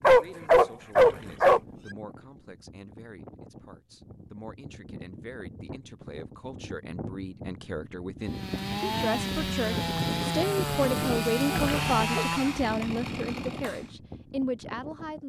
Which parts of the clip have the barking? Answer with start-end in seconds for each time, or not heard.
0.0-1.6, 11.4-12.2.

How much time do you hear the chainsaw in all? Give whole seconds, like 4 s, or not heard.
6 s.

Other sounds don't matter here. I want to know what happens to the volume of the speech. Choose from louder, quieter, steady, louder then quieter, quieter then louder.
louder.